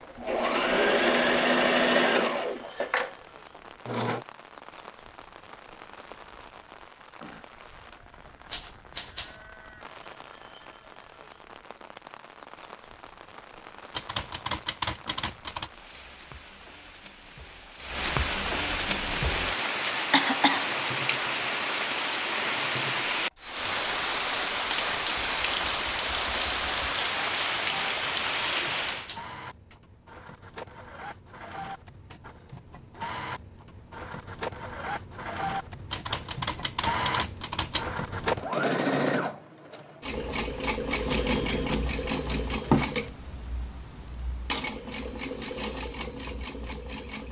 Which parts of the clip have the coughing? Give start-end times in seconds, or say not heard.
20.1-20.7.